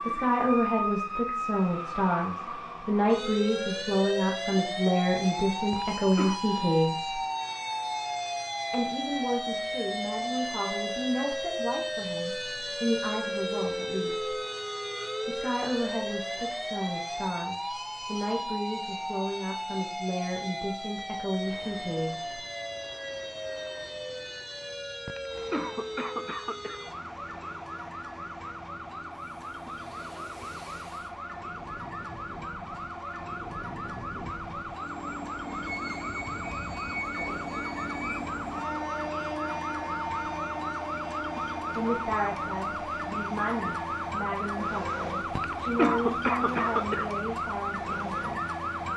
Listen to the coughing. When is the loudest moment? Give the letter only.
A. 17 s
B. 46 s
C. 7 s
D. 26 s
B.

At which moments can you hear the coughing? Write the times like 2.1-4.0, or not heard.
5.7-6.4, 25.1-26.8, 45.4-47.1.